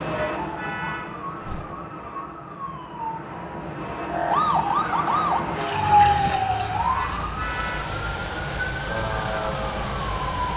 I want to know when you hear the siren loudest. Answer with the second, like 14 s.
6 s.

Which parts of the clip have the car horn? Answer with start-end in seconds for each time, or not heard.
0.1-1.8, 6.9-8.0.